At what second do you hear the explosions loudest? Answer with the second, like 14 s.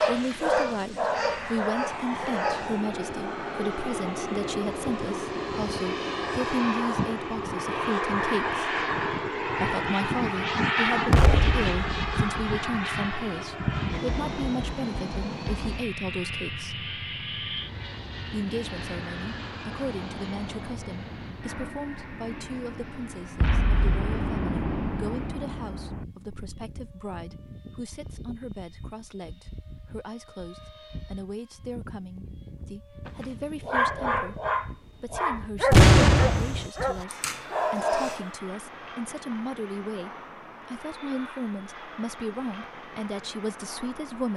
36 s.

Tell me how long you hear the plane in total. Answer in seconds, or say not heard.
44 s.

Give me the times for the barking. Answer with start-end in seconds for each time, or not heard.
0.0-2.8, 33.0-38.3.